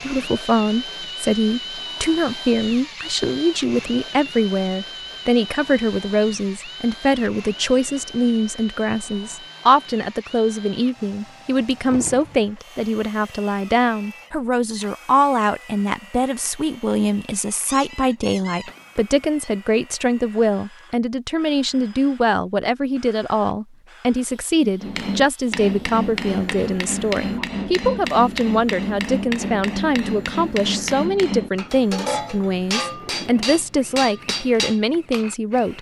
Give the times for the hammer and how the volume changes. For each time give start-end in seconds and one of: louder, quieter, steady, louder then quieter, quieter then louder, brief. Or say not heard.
24.8-35.6 steady.